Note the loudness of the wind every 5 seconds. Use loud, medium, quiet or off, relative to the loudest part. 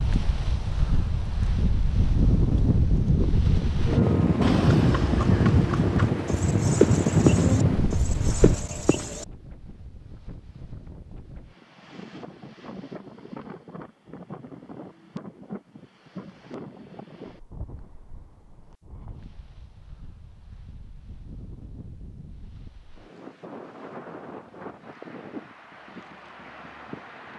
loud, loud, quiet, quiet, quiet, quiet.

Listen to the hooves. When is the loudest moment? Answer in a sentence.
The loudest moment of the hooves is at 7 seconds.